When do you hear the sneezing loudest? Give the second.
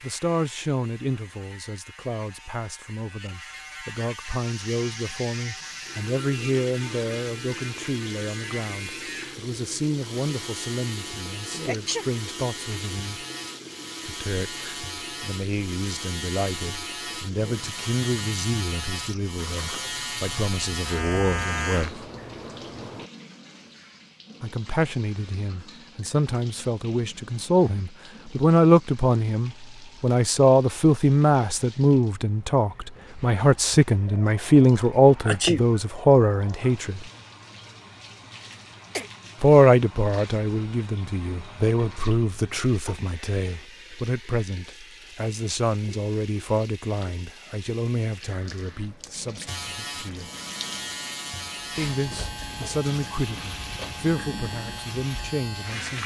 35 s.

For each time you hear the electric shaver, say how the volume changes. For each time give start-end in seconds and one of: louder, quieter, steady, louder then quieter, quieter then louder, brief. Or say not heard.
0.0-23.1 louder
49.5-56.0 steady.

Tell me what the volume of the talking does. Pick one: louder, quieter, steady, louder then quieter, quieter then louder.
louder then quieter.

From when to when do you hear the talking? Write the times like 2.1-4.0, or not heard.
0.0-13.2, 14.1-22.1, 24.4-37.0, 39.4-50.3, 51.8-56.0.